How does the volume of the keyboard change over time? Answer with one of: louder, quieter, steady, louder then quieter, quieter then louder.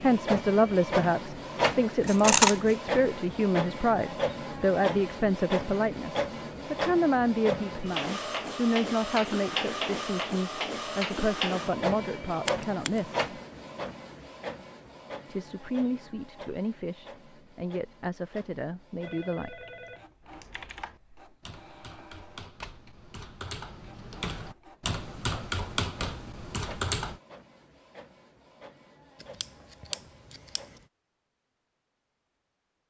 louder.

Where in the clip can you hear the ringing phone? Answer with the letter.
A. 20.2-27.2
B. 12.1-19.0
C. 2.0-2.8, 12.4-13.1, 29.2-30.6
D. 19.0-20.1
D.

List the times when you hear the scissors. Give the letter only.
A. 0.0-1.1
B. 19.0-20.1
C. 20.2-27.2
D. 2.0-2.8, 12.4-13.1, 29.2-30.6
D.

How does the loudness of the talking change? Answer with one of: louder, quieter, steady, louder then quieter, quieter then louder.
quieter.